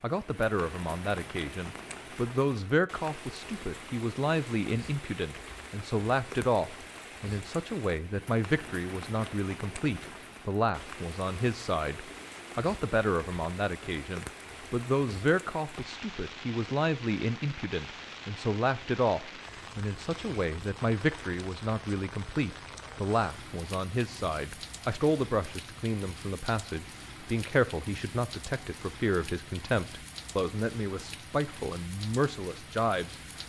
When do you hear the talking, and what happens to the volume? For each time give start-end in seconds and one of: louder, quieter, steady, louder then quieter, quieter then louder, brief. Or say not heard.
0.0-33.1 steady.